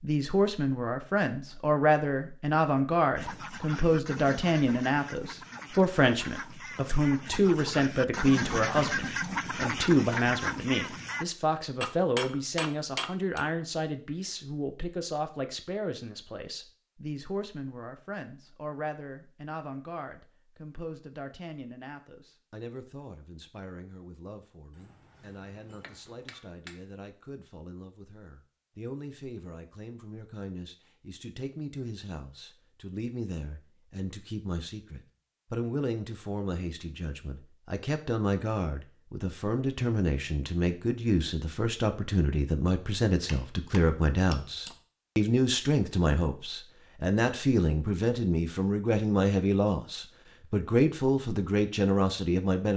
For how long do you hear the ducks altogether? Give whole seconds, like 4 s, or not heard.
8 s.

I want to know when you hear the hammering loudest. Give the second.
12 s.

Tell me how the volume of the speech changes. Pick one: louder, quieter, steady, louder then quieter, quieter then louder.
quieter then louder.